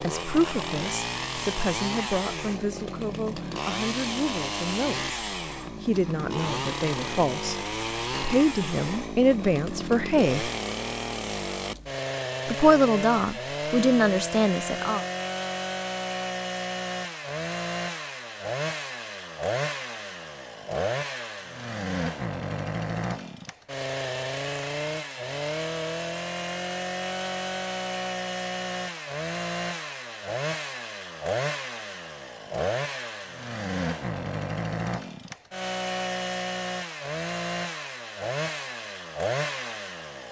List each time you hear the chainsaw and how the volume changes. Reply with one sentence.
You can hear the chainsaw from 0.0 to 40.2 s, at a steady volume.